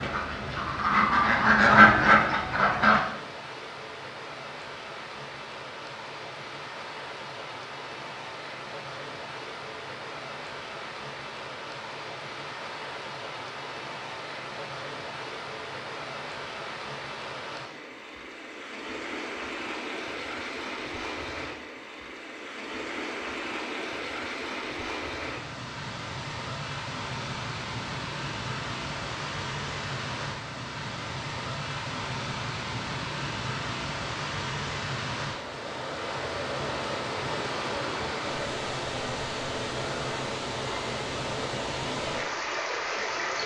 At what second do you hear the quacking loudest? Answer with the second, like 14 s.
2 s.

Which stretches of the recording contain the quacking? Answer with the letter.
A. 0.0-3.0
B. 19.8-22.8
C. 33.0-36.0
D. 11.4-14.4
A.